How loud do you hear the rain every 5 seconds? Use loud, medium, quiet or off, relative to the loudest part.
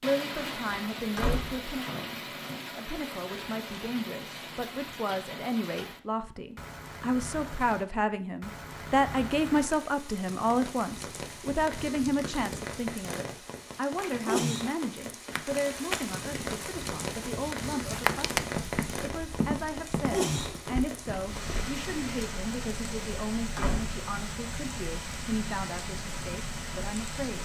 loud, medium, loud, loud, loud, loud.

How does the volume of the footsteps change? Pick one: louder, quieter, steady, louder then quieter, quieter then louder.
louder then quieter.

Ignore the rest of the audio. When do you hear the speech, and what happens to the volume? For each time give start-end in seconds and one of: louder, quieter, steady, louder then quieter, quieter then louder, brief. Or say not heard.
0.0-27.3 louder then quieter.